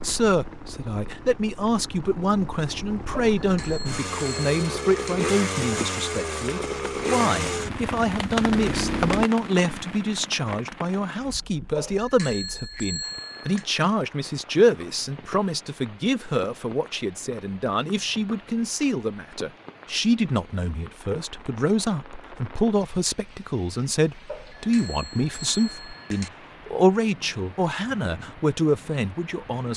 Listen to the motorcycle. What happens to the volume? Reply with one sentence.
The loudness of the motorcycle goes up.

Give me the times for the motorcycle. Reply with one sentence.
The motorcycle can be heard from 0.0 to 9.2 s.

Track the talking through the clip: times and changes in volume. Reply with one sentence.
The talking can be heard from 0.0 to 29.7 s, at a steady volume.